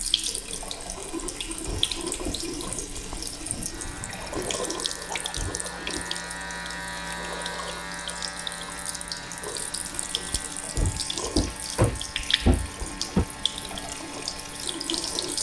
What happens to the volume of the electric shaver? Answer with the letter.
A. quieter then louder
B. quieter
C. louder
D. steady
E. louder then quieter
E.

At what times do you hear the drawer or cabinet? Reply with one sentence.
You can hear the drawer or cabinet from 1.6 to 2.8 s, from 5.3 to 6.0 s and from 10.8 to 13.2 s.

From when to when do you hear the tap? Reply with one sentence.
You can hear the tap from 0.0 to 15.3 s.